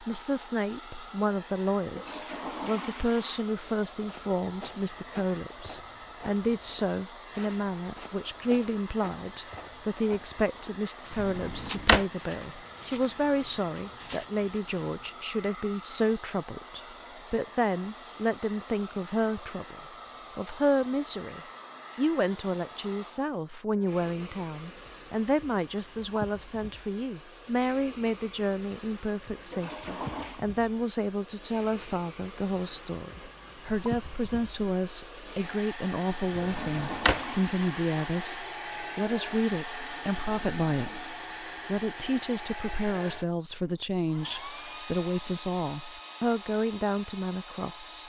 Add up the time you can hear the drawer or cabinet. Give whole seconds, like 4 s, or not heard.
2 s.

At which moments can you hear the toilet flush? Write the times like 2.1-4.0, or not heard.
1.9-3.5, 29.3-30.4, 36.3-38.5.